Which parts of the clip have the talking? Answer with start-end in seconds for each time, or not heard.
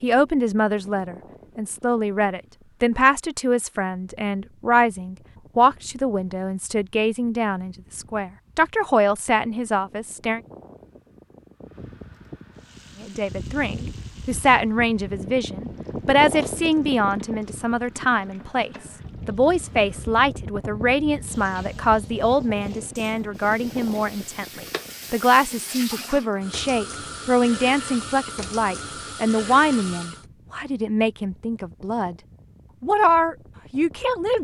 0.0-10.4, 13.0-32.1, 32.8-34.4.